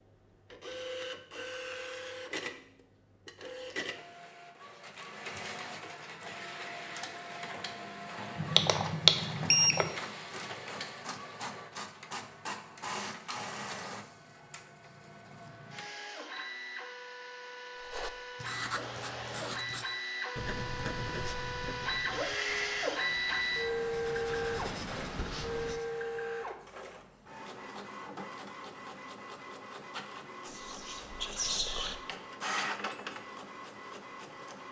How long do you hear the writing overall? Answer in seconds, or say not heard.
8 s.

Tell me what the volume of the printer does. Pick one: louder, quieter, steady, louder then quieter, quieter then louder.
louder then quieter.